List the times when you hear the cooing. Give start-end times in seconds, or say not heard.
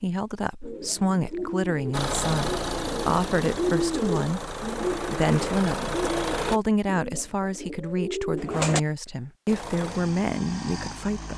0.6-8.8.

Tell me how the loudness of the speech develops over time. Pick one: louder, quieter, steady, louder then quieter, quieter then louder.
steady.